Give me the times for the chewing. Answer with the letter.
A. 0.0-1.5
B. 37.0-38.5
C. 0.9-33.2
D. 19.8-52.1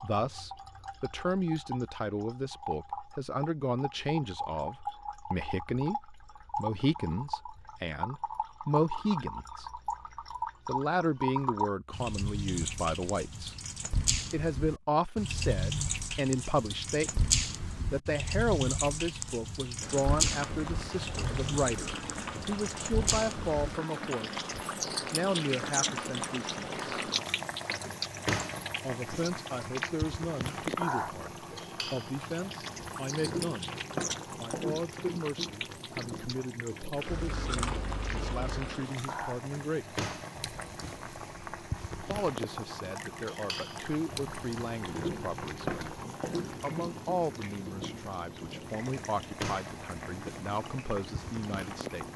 B.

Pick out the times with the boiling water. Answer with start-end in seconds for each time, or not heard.
19.8-52.1.